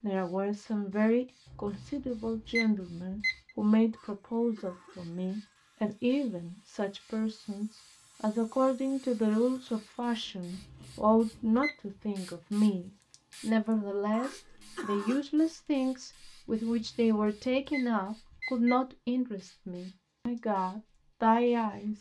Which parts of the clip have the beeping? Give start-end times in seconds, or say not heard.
1.4-3.5, 10.6-12.0, 16.6-18.8.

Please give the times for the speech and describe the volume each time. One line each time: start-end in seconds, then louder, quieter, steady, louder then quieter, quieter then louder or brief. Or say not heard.
0.0-21.9 steady.